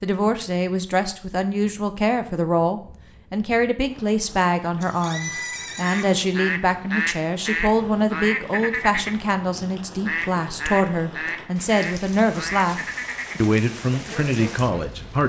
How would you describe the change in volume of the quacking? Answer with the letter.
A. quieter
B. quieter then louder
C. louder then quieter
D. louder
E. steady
A.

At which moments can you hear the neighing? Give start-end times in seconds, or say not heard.
4.8-6.2.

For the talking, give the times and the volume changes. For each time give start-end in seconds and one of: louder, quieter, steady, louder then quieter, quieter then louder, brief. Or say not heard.
0.0-12.8 steady
13.4-15.2 brief.